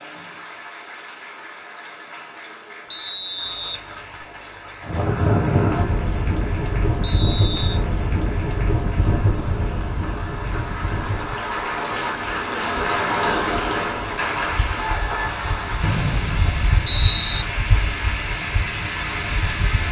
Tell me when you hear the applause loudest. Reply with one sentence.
The loudest moment of the applause is at 13 seconds.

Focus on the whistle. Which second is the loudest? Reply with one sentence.
The volume of the whistle peaks at 17 seconds.